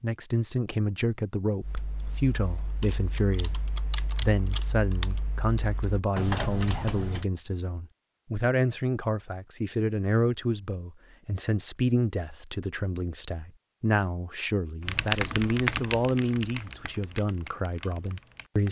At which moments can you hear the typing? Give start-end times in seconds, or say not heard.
1.6-7.2, 14.8-18.6.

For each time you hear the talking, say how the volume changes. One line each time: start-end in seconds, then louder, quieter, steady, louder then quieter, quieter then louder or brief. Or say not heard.
0.0-18.6 steady.